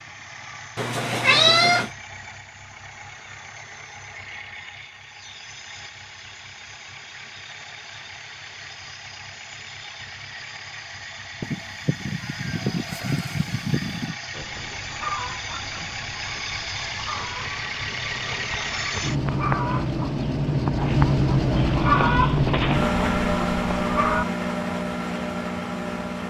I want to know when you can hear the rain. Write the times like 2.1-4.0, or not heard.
not heard.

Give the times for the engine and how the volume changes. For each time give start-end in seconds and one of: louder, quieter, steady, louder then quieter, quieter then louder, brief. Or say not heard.
0.0-26.2 louder.